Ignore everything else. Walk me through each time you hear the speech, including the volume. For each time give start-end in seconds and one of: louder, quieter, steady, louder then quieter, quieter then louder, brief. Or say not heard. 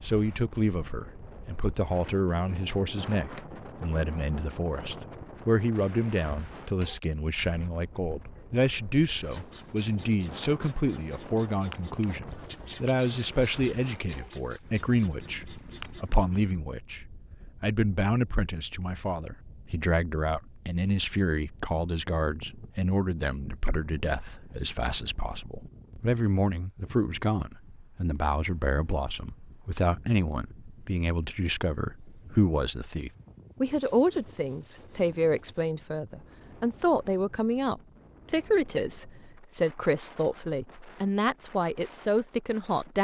0.0-42.9 steady.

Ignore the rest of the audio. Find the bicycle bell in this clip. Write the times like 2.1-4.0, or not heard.
not heard.